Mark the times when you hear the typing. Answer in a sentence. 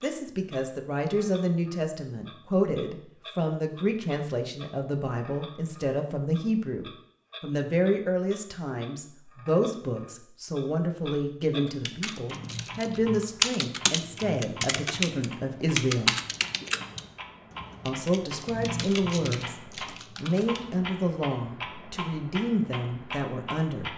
The typing can be heard from 11.7 to 20.6 s.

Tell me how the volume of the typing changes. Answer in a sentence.
The volume of the typing goes down, then up.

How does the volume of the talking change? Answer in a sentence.
The loudness of the talking stays about the same.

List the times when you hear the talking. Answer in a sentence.
The talking can be heard from 0.0 to 16.1 s and from 17.9 to 23.9 s.